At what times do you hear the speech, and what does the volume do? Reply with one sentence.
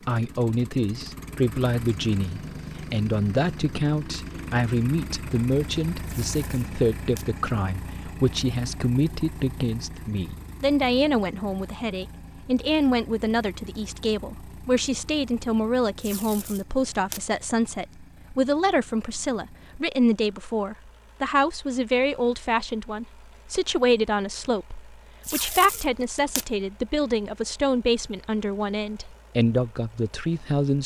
The speech can be heard from 0.1 to 30.8 s, at a steady volume.